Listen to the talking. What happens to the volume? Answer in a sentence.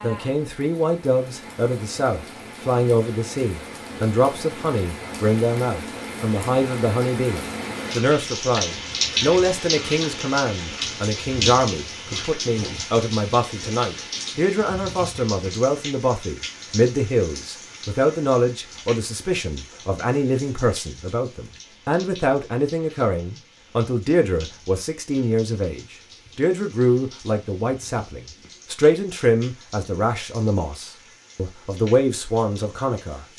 The loudness of the talking stays about the same.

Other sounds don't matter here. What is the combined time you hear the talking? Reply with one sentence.
You can hear the talking for 33 seconds altogether.